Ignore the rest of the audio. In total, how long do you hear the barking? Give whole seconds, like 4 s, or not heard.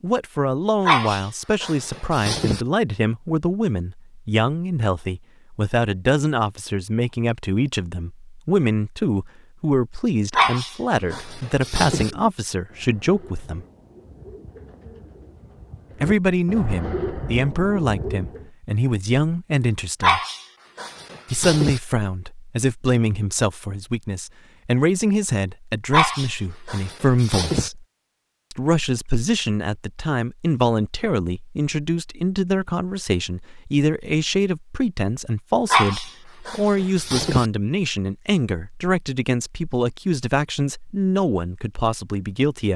9 s.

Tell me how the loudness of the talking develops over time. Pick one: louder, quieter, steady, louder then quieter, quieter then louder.
steady.